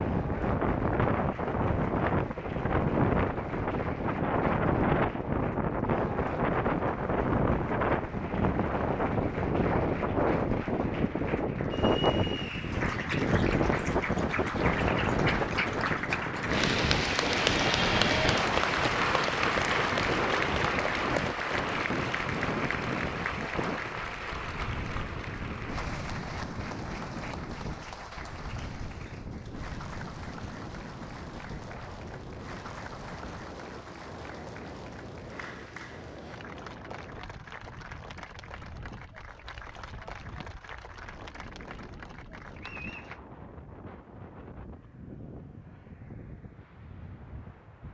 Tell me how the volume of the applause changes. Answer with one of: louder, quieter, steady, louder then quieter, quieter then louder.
louder then quieter.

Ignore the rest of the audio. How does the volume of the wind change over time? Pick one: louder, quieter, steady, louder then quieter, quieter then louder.
quieter.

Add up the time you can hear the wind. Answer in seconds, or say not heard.
48 s.